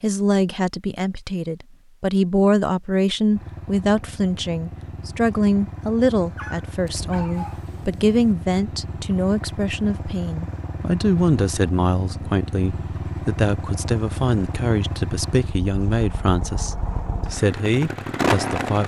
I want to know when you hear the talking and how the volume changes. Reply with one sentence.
The talking can be heard from 0.0 to 18.8 s, at a steady volume.